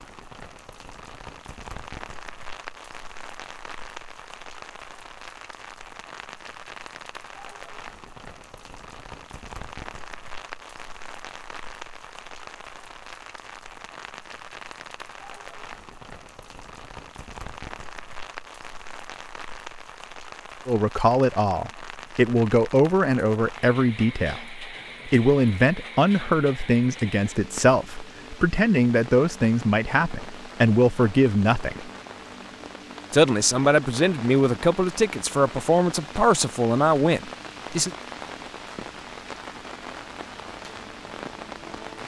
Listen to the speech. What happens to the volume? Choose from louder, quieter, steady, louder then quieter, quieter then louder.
steady.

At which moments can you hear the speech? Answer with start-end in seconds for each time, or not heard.
20.6-31.9, 33.1-37.9.